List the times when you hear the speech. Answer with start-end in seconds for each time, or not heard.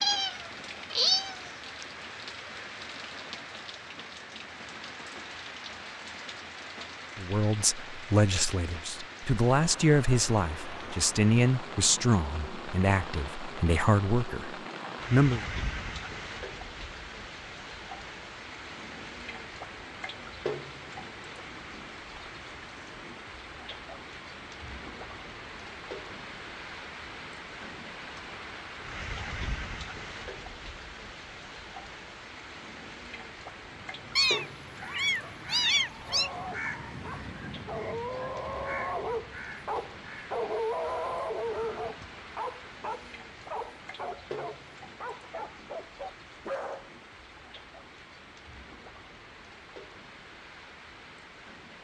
7.2-15.4.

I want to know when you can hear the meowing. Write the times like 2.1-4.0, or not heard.
0.0-1.9, 34.1-36.3.